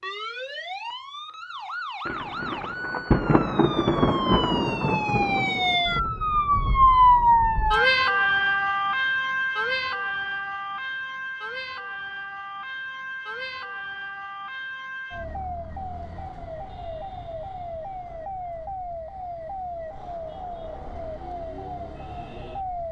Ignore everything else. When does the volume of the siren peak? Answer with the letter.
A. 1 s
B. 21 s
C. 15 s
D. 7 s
D.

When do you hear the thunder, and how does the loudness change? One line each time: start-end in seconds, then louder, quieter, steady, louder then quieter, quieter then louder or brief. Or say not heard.
2.0-6.1 louder then quieter.